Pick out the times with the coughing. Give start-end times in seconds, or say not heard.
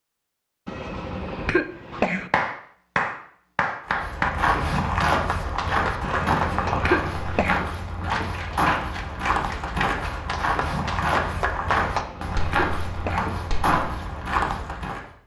0.7-2.3, 6.0-7.7, 11.8-13.3.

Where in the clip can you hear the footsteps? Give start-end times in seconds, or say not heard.
3.9-15.1.